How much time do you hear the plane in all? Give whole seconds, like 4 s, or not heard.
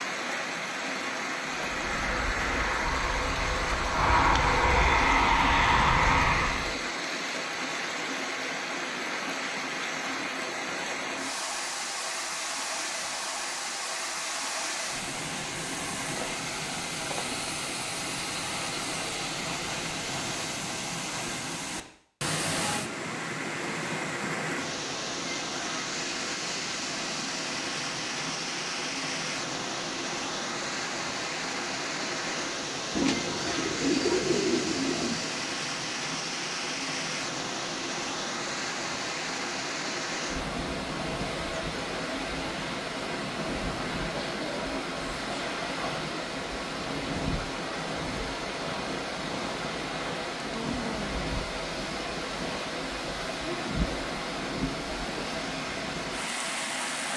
5 s.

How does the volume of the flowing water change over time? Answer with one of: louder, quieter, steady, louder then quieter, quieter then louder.
steady.